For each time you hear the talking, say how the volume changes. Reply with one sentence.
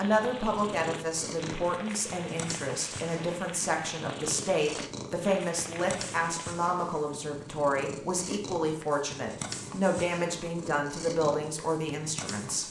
The talking can be heard from 0.0 to 12.6 s, at a steady volume.